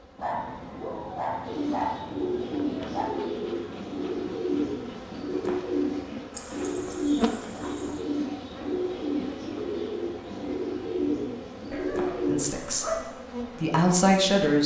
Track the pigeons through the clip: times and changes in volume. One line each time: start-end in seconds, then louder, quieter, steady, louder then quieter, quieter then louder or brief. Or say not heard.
1.4-12.4 steady.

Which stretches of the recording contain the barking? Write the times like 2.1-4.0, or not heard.
0.1-3.1, 6.3-8.0, 11.7-13.1.